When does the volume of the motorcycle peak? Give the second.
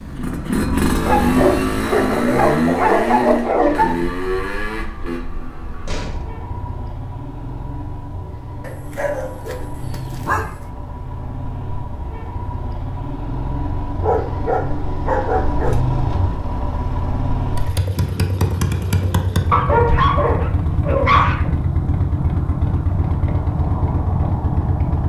1 s.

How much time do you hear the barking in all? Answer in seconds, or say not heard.
9 s.